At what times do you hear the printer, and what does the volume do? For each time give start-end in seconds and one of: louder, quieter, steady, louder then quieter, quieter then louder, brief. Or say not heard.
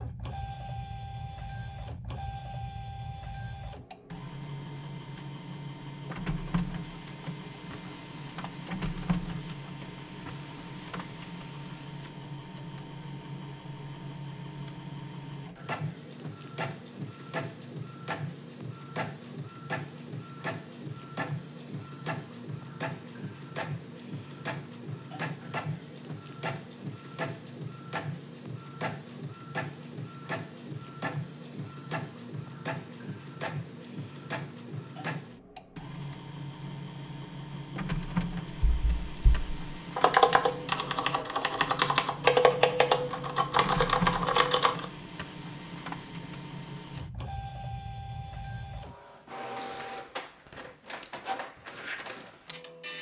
0.0-52.9 steady.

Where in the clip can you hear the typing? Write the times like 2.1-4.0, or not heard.
38.6-44.9.